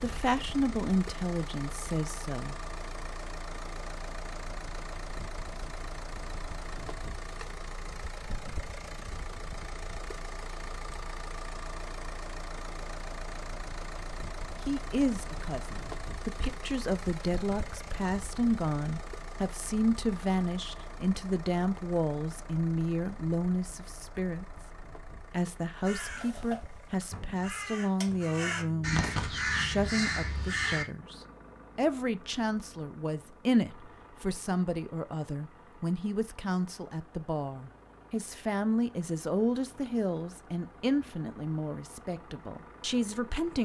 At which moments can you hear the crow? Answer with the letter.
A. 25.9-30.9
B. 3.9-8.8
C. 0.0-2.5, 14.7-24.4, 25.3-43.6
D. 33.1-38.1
A.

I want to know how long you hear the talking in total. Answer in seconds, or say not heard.
31 s.